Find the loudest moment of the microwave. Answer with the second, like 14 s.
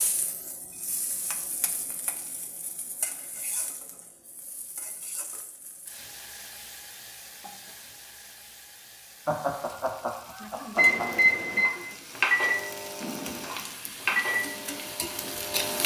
11 s.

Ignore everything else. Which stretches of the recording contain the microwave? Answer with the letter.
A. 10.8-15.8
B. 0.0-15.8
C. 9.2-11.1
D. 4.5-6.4
A.